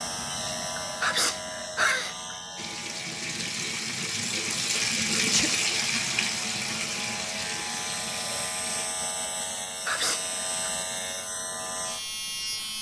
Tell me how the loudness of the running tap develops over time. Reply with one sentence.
The loudness of the running tap goes up, then down.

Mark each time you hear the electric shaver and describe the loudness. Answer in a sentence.
You can hear the electric shaver from 0.0 to 12.7 s, getting quieter then louder.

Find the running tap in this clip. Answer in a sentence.
The running tap can be heard from 2.5 to 8.9 s.